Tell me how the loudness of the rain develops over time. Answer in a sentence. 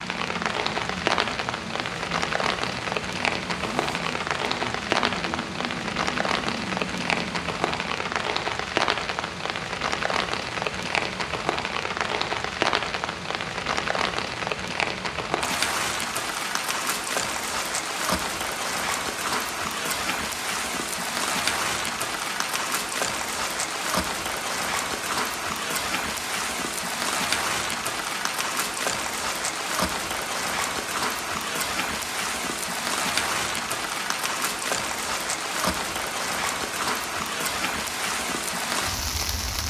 The volume of the rain stays about the same.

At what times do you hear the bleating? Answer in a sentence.
You can't hear the bleating here.